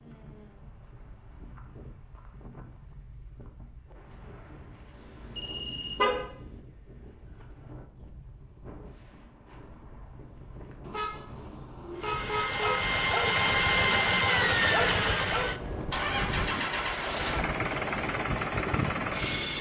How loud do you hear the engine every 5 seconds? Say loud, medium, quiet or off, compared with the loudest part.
off, off, loud, medium.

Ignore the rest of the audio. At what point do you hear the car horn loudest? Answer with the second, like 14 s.
6 s.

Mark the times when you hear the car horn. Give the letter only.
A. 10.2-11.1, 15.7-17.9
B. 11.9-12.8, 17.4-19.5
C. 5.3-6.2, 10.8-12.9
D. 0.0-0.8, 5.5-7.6
C.